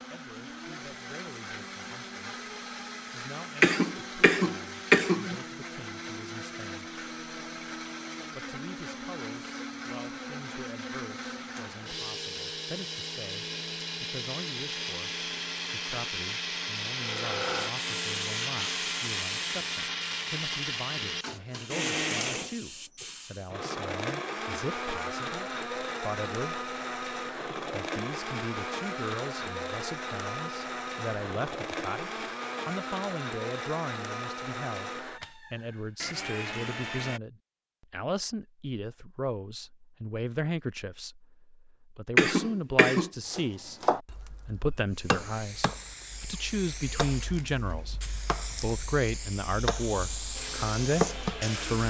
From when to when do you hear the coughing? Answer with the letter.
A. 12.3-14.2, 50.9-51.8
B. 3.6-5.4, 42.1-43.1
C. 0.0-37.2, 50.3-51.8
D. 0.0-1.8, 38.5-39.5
B.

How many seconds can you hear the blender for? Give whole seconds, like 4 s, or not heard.
39 s.